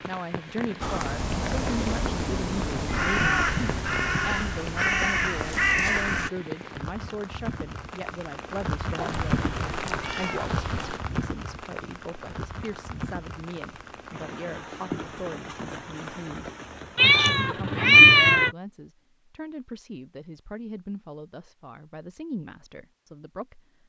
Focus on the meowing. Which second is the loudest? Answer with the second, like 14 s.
18 s.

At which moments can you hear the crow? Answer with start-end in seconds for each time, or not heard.
0.8-6.3.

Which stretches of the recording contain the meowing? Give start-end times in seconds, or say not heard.
2.9-4.4, 8.9-10.9, 16.9-18.5.